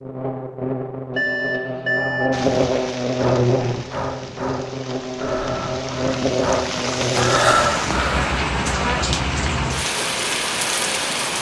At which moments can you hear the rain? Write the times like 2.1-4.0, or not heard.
2.3-11.3.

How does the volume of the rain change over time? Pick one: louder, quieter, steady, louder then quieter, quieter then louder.
louder.